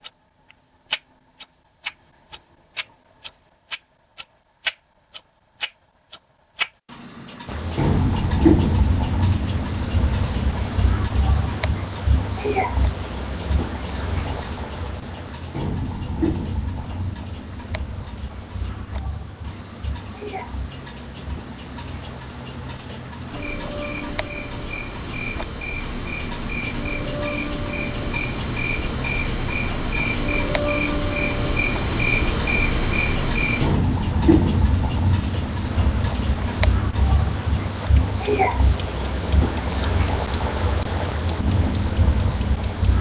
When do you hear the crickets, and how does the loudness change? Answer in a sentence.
You can hear the crickets from 7.5 to 42.9 s, getting quieter then louder.